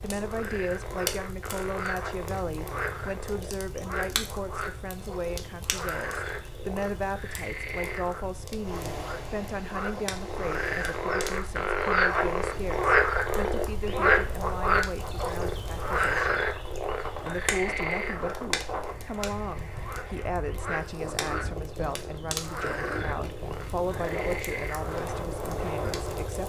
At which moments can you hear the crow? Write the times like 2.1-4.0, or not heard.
not heard.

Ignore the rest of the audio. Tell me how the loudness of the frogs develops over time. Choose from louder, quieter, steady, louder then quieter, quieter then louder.
louder then quieter.